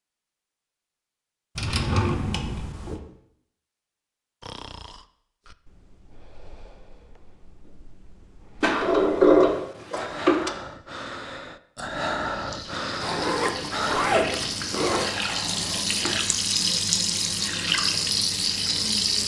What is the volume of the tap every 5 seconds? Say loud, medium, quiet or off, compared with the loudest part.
off, off, medium, loud.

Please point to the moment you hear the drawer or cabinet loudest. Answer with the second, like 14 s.
9 s.